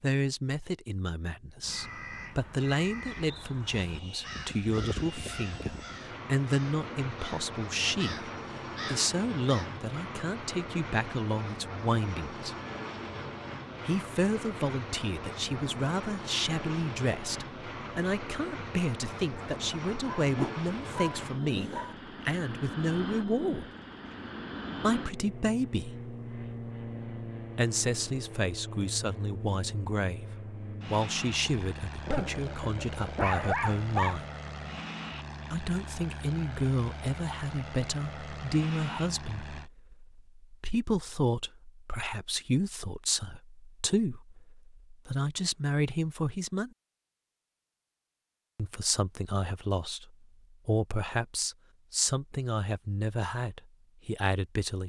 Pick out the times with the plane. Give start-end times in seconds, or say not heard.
3.6-39.7.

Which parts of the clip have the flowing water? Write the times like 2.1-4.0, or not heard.
not heard.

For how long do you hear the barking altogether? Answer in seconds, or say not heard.
4 s.